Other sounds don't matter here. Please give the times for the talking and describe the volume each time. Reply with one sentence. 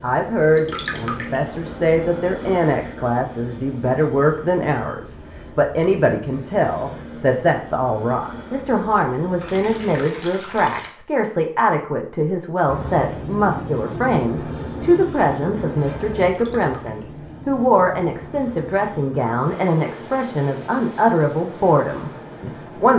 You can hear the talking from 0.0 to 22.9 s, at a steady volume.